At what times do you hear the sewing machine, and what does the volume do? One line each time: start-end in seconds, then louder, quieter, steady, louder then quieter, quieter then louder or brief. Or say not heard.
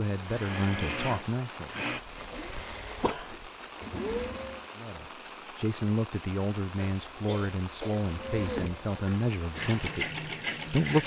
0.2-4.7 quieter then louder
8.1-11.0 brief.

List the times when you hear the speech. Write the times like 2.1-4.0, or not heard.
0.0-1.7, 4.8-11.0.